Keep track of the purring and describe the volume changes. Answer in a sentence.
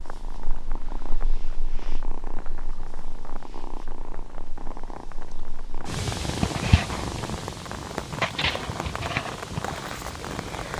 The volume of the purring goes up.